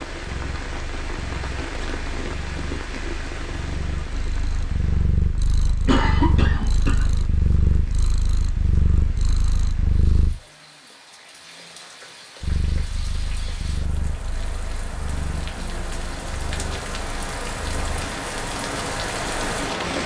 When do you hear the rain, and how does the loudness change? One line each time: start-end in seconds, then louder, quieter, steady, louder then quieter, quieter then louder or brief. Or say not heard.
0.0-20.0 quieter then louder.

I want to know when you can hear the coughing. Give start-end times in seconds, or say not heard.
5.8-7.0.